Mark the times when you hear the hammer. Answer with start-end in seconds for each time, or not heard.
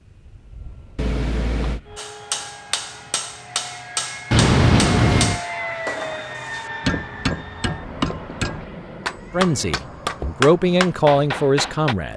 1.9-11.9.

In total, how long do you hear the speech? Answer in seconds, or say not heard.
3 s.